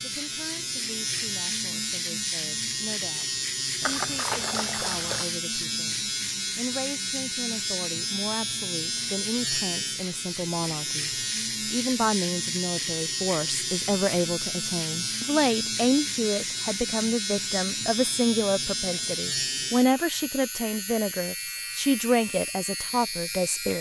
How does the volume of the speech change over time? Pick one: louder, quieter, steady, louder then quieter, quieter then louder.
louder.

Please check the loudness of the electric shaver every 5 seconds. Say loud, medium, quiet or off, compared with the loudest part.
loud, loud, loud, loud, medium.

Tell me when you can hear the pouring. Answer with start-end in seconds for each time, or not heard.
3.8-5.2.